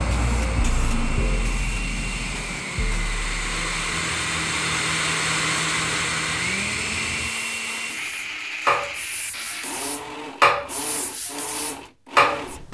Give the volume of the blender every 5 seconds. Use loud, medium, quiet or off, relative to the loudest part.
loud, loud, medium.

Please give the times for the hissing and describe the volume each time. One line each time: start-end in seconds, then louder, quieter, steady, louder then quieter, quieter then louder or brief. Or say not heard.
0.0-12.6 quieter then louder.